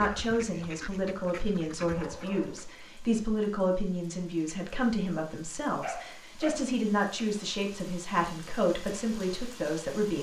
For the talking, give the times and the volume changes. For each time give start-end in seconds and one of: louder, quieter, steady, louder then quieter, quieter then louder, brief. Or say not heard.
0.0-10.1 steady.